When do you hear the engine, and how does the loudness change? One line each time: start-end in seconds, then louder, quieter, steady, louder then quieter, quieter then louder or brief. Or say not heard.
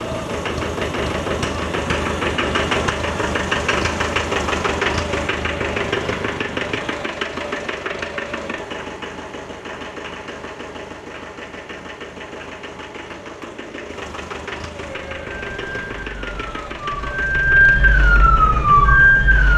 0.0-19.5 quieter.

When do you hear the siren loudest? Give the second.
19 s.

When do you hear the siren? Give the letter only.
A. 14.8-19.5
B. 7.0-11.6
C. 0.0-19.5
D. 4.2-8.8
A.